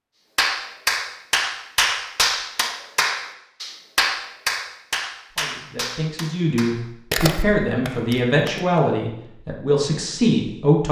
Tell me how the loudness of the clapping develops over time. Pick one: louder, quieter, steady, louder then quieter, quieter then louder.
quieter.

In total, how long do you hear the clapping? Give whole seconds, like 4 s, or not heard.
8 s.